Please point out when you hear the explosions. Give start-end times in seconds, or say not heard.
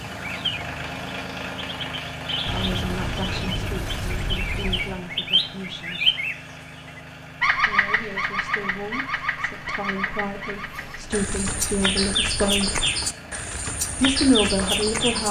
2.5-5.0.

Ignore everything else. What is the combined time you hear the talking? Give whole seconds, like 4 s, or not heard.
10 s.